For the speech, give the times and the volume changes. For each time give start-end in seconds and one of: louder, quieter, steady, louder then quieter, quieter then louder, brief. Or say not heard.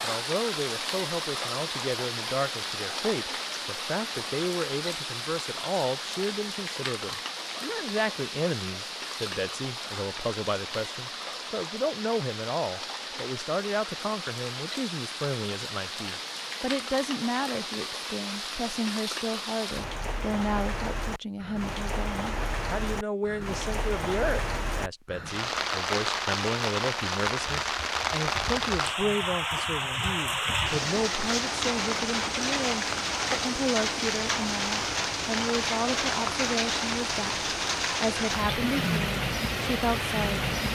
0.0-40.5 steady.